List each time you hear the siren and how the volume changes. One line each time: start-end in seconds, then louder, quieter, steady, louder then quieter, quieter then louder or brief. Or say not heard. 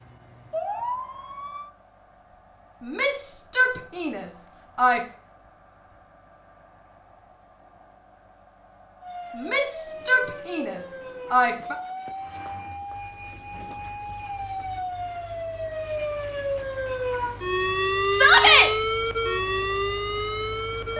0.0-1.7 brief
9.0-20.9 louder.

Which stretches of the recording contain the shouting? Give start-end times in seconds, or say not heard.
2.8-5.0, 9.3-11.8, 18.1-18.7.